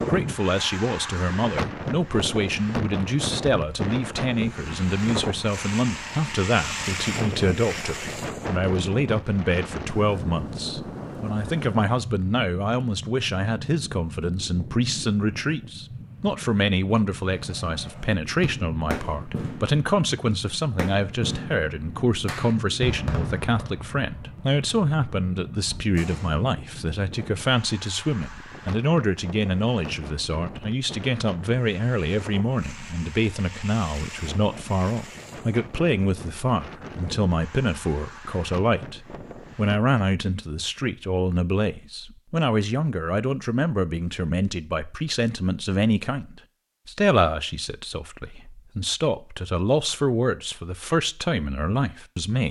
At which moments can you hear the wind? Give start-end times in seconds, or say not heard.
0.0-39.8.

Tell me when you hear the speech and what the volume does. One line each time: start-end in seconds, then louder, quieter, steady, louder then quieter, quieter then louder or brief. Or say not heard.
0.0-52.4 steady.